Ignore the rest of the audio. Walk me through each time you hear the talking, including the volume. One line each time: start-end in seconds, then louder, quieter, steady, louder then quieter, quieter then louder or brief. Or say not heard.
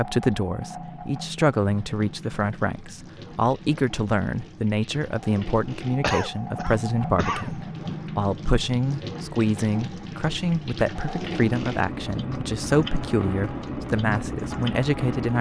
0.0-15.3 steady.